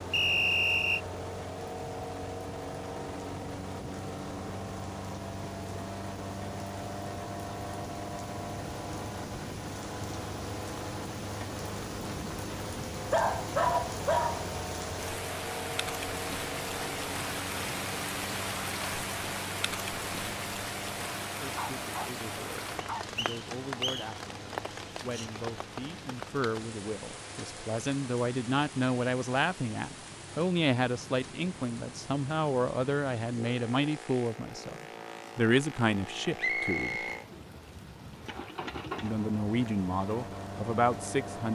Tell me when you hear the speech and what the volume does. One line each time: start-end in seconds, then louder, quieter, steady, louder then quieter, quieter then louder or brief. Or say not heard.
21.4-37.0 louder
39.0-41.5 brief.